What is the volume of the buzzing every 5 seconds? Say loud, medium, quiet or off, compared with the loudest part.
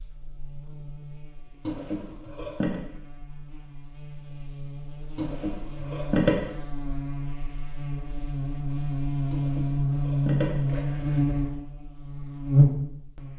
quiet, medium, loud.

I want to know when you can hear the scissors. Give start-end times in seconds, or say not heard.
1.6-2.8, 5.2-6.3, 9.3-11.2.